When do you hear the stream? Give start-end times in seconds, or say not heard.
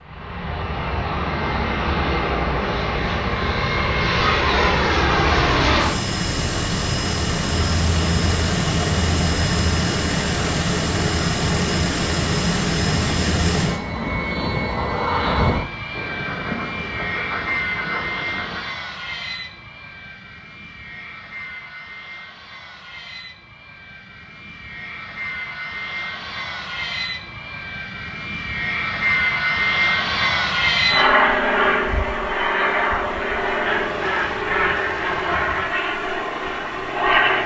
not heard.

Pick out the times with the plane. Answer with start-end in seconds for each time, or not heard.
0.1-37.4.